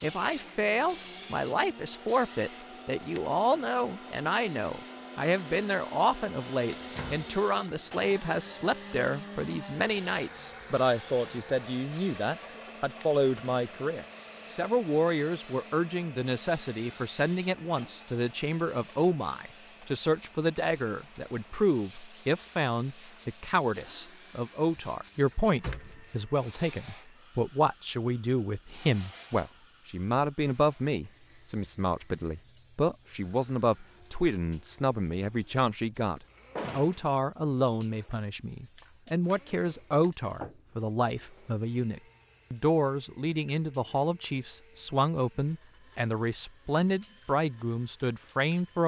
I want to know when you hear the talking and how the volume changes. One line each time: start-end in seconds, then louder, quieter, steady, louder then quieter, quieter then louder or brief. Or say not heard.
0.0-48.8 steady.